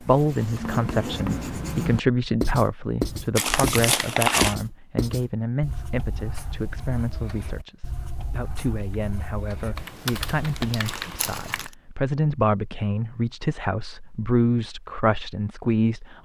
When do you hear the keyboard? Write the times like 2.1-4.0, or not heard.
9.8-11.7.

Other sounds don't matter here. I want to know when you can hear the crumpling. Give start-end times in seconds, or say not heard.
3.4-4.5, 10.6-11.7.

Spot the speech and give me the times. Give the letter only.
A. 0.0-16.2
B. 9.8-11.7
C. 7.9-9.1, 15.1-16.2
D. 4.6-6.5
A.